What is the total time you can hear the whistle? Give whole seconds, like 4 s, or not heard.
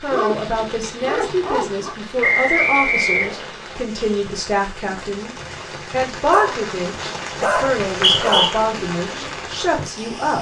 2 s.